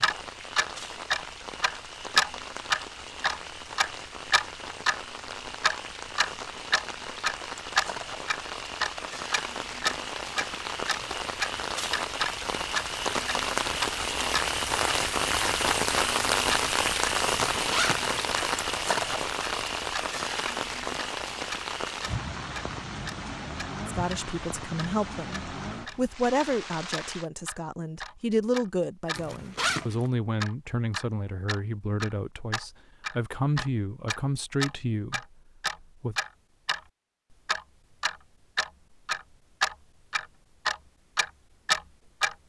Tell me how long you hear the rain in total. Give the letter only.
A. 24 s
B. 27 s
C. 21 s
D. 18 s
B.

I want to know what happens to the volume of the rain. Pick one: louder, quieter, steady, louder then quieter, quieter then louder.
louder then quieter.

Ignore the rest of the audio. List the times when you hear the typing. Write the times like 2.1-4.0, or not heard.
not heard.